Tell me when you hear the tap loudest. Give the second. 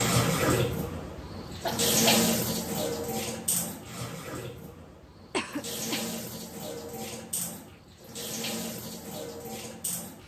2 s.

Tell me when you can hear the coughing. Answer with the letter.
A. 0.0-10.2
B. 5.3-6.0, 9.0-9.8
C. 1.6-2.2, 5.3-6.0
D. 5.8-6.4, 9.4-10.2
C.